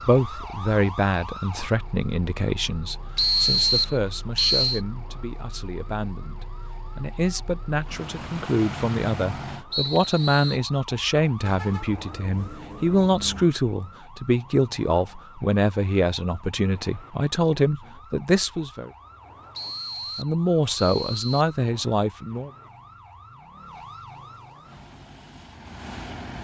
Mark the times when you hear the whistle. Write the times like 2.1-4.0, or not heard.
3.1-4.8, 9.7-10.6, 19.6-21.6.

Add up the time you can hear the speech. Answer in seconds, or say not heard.
21 s.